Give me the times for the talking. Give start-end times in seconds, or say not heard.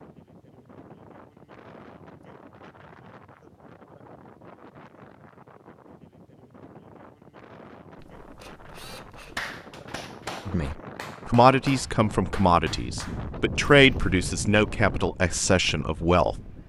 10.4-16.4.